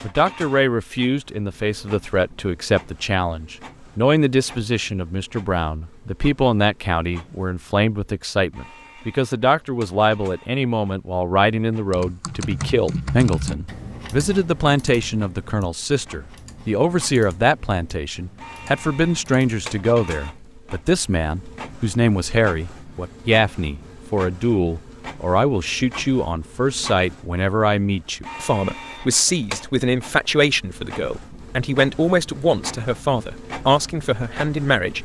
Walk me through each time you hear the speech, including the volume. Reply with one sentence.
You can hear the speech from 0.0 to 35.0 s, at a steady volume.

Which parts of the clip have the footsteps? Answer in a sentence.
You can't hear the footsteps here.